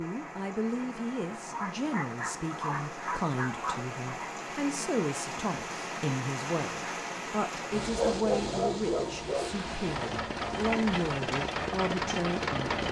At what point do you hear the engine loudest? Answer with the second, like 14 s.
12 s.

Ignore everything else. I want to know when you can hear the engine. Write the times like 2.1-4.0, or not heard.
9.2-12.8.